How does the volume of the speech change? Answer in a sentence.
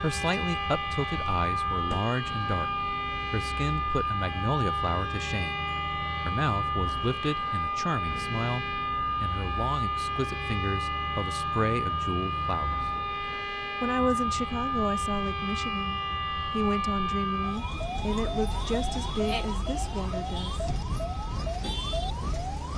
The loudness of the speech stays about the same.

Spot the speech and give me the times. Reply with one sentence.
The speech can be heard from 0.0 to 12.8 s and from 13.8 to 20.6 s.